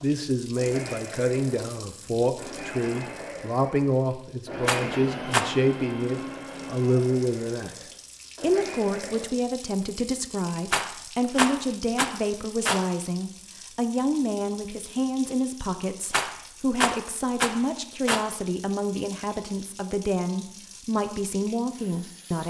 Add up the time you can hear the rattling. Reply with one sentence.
The rattling can be heard for 5 seconds in total.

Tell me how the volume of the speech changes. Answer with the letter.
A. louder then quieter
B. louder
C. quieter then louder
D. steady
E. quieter
D.